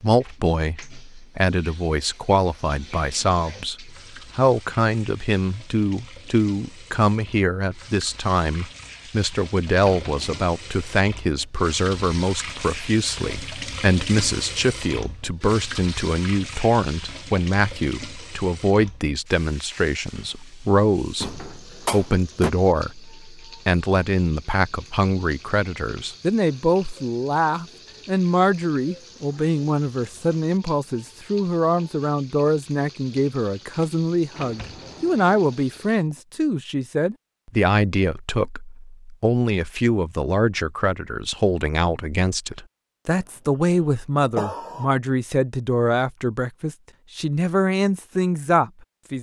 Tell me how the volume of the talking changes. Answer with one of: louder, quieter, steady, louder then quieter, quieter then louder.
steady.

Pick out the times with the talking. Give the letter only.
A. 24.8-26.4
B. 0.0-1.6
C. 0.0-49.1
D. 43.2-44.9
C.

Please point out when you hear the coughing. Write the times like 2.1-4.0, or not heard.
43.2-44.9.